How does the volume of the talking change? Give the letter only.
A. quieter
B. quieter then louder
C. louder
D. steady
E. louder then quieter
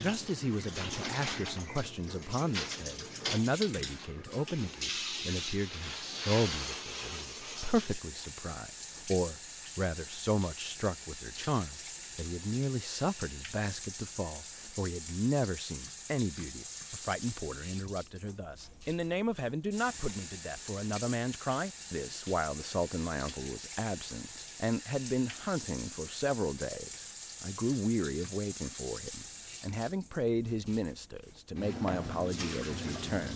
D.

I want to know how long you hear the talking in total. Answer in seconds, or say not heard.
33 s.